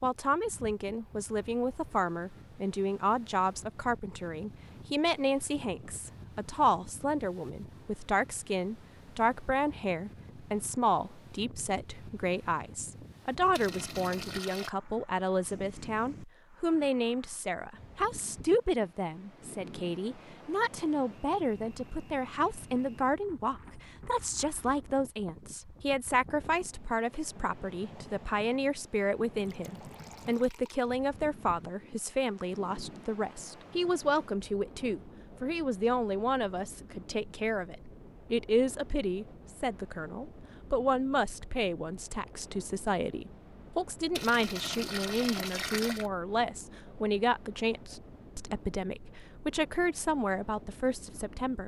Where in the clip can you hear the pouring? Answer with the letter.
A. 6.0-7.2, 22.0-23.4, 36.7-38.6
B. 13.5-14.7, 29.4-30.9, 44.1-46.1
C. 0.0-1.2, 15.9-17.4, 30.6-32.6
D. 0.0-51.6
B.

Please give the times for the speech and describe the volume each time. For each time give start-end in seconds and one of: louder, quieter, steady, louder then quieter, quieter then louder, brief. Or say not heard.
0.0-51.6 steady.